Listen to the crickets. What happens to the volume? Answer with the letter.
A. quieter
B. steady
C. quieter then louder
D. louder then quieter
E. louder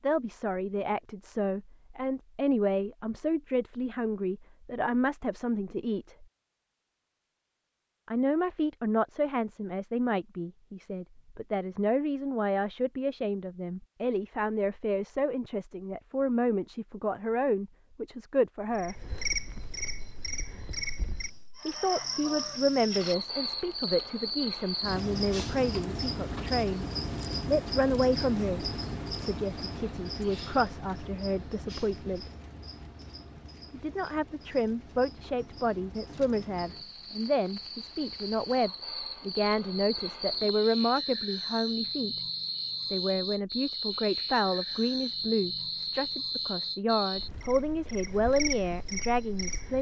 C.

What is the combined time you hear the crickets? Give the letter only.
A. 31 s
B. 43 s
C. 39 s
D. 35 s
A.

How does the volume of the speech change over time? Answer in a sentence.
The loudness of the speech stays about the same.